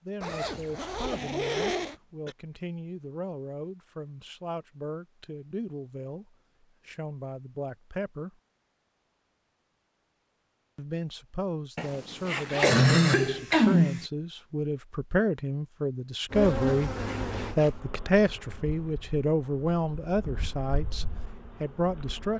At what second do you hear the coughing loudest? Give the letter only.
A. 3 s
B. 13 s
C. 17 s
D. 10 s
B.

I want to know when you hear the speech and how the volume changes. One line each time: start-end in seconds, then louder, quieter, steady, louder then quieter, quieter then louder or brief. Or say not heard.
0.1-8.3 steady
10.8-16.9 louder
17.6-22.3 quieter then louder.